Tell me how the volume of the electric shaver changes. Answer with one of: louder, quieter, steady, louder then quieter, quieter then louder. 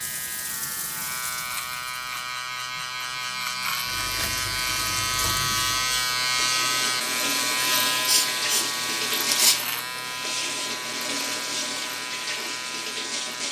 louder then quieter.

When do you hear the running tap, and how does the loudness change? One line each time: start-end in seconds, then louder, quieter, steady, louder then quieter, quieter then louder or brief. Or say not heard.
0.0-13.4 louder.